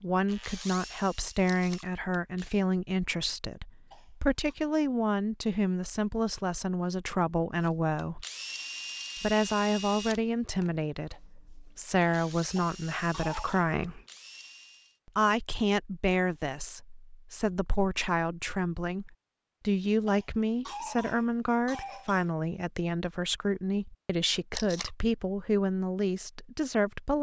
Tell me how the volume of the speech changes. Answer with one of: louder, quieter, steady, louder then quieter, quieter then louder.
steady.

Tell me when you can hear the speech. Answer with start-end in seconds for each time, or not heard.
0.0-8.2, 9.2-14.0, 15.1-27.1.